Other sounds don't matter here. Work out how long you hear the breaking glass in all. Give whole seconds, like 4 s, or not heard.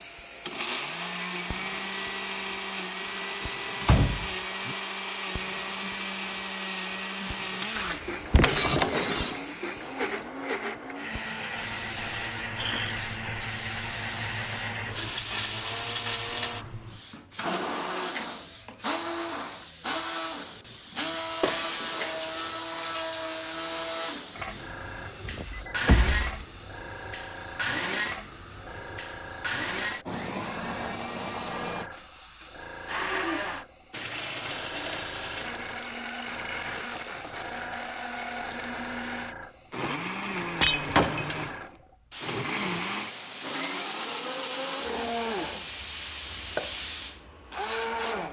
4 s.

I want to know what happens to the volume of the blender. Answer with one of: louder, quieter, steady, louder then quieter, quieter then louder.
steady.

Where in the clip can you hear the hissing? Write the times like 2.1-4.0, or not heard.
0.0-48.2.